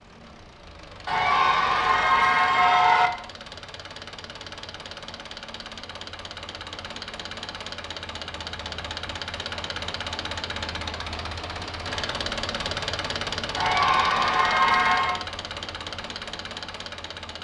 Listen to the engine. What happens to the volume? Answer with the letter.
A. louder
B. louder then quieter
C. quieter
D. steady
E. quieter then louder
A.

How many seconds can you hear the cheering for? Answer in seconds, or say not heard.
4 s.